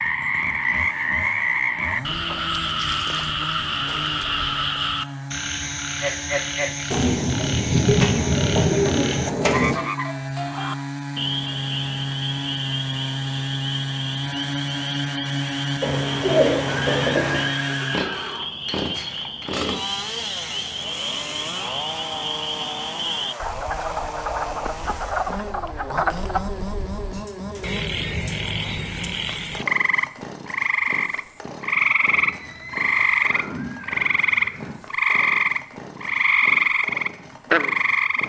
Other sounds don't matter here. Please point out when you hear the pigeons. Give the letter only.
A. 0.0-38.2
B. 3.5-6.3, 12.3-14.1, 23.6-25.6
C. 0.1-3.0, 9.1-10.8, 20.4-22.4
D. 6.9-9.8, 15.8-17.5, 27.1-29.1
D.